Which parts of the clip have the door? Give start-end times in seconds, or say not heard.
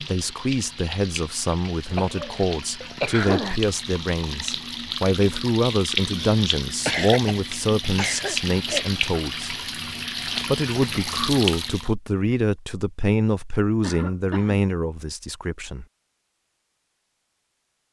not heard.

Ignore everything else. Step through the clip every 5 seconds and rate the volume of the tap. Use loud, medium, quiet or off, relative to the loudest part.
medium, loud, loud, off.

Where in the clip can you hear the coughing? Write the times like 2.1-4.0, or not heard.
1.9-3.6, 6.8-8.8, 13.8-14.7.